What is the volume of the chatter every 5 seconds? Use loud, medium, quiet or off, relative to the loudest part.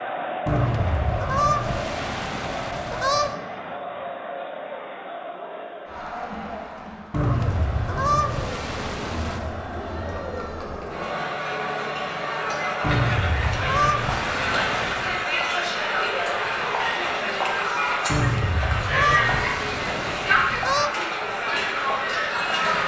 medium, medium, loud, loud, loud.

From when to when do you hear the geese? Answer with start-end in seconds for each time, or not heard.
0.5-3.4, 7.1-9.4, 12.8-15.2, 18.1-20.9.